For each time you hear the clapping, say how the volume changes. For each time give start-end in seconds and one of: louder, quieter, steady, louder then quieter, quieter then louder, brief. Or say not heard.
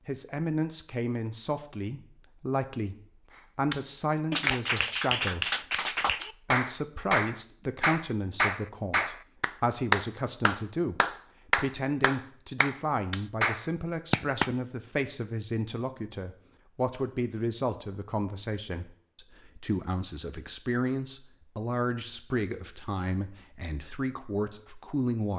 3.7-14.6 steady.